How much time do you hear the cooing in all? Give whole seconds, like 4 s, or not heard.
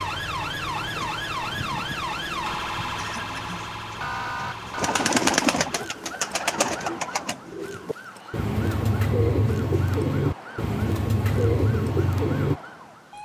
12 s.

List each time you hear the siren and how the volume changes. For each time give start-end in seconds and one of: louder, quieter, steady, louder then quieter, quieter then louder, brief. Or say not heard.
0.0-13.2 quieter.